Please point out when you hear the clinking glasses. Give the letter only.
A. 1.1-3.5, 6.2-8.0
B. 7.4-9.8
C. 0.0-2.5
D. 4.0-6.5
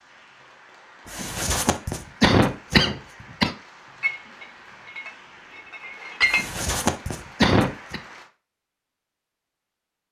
D.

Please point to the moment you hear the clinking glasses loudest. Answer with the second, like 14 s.
6 s.